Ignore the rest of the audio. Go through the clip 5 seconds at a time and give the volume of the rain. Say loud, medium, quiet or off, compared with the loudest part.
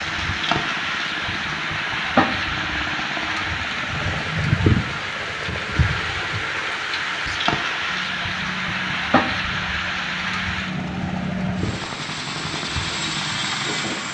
loud, loud, medium.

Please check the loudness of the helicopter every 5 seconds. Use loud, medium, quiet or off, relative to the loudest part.
medium, medium, loud.